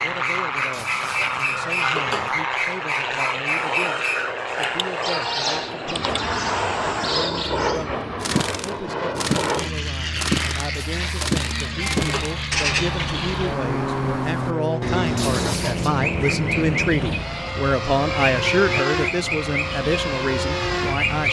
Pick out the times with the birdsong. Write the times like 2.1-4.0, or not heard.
0.0-21.2.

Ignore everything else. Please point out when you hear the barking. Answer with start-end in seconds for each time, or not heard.
not heard.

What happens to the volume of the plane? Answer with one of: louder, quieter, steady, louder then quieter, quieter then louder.
steady.